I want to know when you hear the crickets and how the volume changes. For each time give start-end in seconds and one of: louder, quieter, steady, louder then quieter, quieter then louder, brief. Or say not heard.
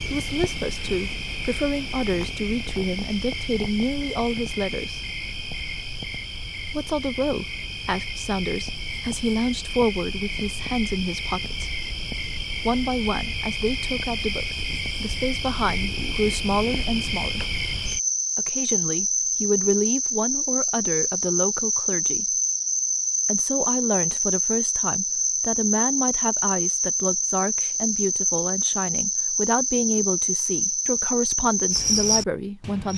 0.0-32.9 louder.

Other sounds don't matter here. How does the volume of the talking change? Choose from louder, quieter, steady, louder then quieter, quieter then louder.
steady.